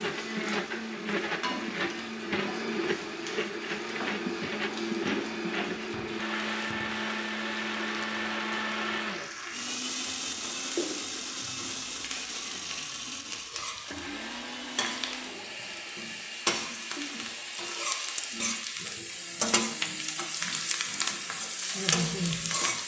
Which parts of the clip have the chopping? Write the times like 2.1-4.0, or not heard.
not heard.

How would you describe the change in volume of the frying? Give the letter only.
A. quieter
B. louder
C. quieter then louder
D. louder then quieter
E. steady
B.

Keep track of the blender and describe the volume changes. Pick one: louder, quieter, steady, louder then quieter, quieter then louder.
quieter.